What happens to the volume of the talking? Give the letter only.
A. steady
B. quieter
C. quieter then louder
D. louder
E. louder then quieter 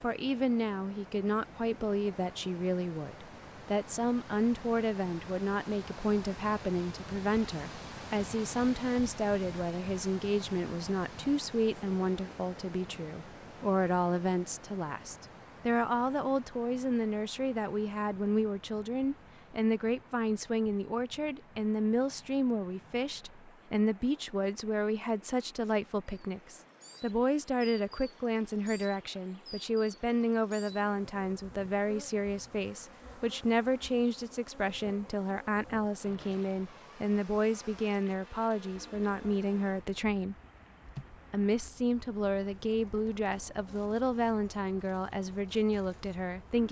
A.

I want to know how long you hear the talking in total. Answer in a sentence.
You can hear the talking for 46 seconds altogether.